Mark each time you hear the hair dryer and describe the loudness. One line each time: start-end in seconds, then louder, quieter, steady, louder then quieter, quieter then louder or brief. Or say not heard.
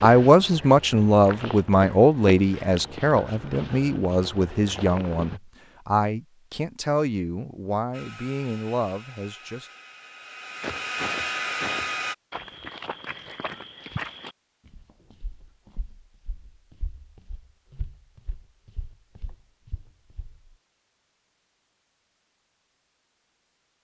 7.9-12.2 louder.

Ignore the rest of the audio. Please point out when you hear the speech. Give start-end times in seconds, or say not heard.
0.0-9.7.